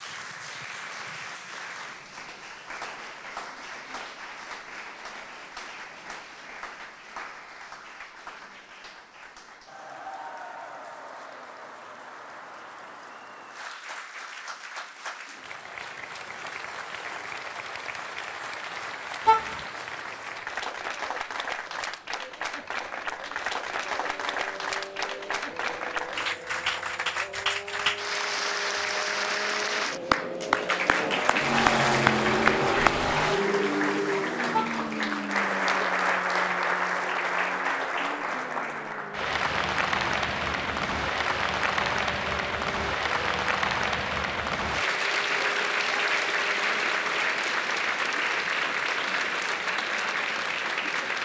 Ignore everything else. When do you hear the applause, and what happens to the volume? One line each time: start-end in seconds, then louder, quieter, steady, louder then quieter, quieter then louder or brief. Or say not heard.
0.0-51.1 louder.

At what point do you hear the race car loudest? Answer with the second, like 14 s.
32 s.